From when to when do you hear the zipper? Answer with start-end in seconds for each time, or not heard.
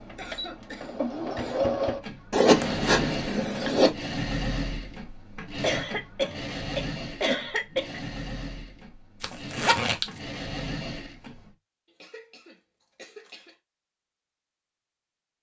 2.3-3.9, 9.2-10.1.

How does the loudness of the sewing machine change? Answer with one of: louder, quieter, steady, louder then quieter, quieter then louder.
quieter.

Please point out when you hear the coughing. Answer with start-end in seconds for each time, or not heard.
0.1-1.7, 5.6-8.0, 12.0-13.6.